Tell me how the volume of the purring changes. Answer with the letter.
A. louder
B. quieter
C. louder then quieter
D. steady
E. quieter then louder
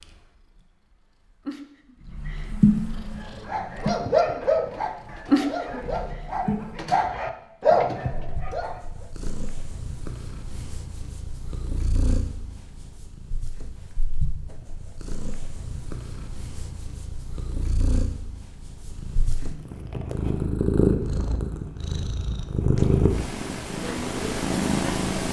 E.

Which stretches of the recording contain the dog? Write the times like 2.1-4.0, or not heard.
2.9-9.1.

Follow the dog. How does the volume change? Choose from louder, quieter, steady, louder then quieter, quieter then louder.
quieter then louder.